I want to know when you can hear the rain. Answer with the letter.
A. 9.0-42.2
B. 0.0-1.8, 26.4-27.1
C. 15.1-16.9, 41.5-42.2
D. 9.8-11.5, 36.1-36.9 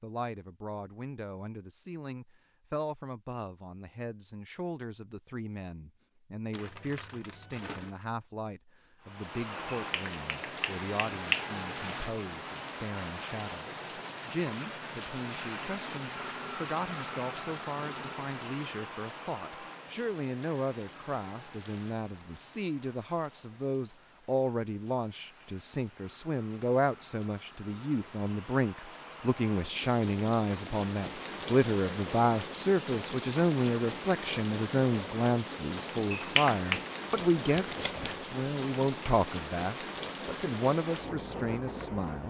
A.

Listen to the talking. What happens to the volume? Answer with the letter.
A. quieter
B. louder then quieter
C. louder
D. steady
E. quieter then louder
C.